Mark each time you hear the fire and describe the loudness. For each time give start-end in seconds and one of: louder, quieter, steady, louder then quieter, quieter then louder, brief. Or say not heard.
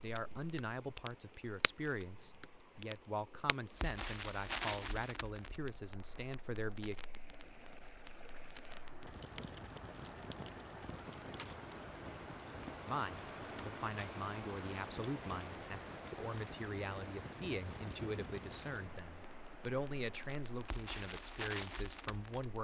0.0-22.5 quieter then louder.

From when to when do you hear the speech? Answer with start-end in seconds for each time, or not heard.
0.0-7.0, 12.8-22.5.